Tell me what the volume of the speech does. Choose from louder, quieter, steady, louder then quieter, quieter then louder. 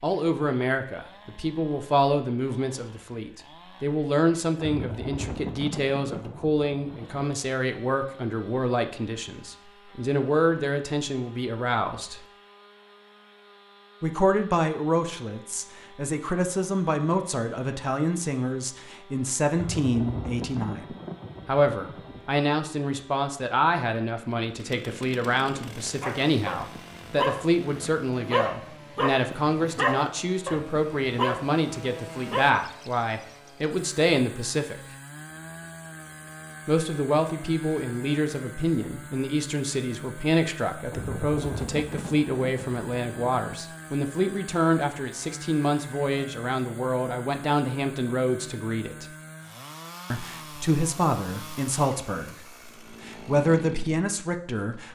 steady.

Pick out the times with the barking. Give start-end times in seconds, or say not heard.
26.0-32.5.